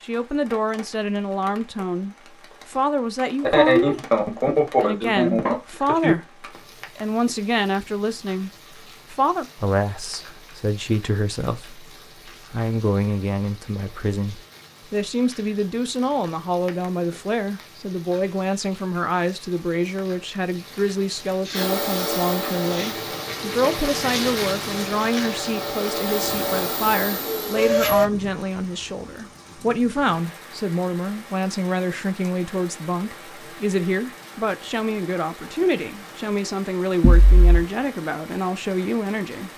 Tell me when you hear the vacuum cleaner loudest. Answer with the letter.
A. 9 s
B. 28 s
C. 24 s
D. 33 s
B.